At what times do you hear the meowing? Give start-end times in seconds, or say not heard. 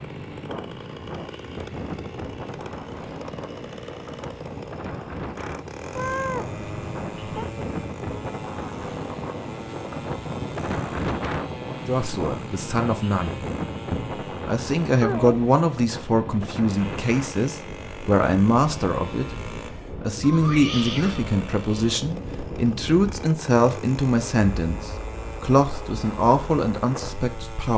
5.9-7.5, 14.9-15.4, 20.2-21.2.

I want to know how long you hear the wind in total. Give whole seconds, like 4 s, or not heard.
28 s.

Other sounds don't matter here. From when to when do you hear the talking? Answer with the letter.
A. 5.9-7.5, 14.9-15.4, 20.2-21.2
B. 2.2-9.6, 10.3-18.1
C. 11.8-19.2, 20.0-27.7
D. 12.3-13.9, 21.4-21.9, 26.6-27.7
C.